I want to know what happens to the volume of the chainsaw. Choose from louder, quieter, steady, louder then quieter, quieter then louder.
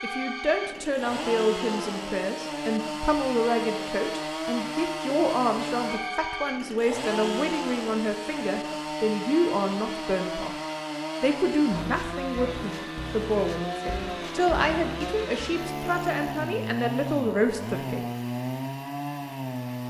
steady.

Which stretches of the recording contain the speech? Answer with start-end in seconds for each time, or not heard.
0.0-10.6, 11.2-18.1.